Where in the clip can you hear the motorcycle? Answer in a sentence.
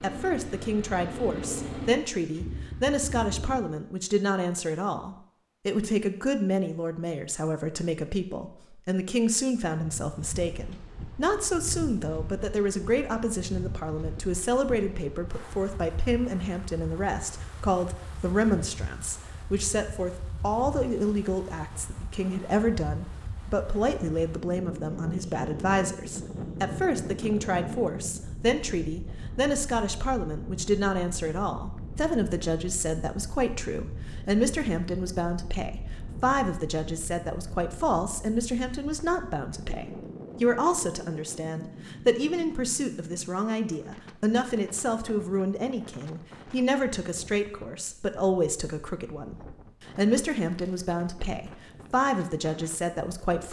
You can hear the motorcycle from 0.0 to 3.6 s.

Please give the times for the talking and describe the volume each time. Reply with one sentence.
You can hear the talking from 0.0 to 53.4 s, at a steady volume.